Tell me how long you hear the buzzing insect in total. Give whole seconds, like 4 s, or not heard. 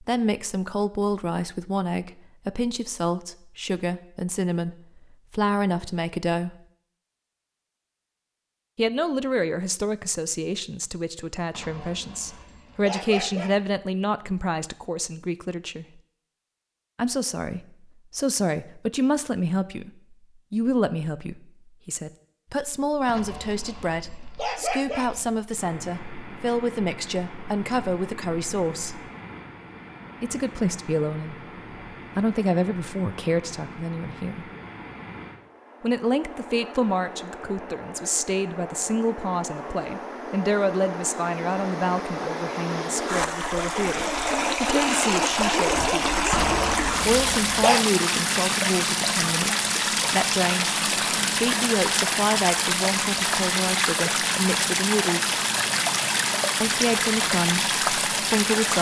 not heard.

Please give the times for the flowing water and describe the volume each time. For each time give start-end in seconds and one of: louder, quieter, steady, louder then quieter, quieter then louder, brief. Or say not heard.
25.6-58.7 louder.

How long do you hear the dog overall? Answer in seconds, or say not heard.
6 s.